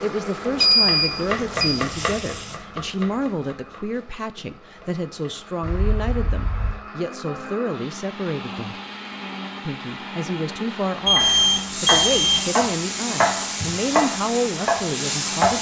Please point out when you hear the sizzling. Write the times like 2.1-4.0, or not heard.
0.0-2.6, 11.2-15.5.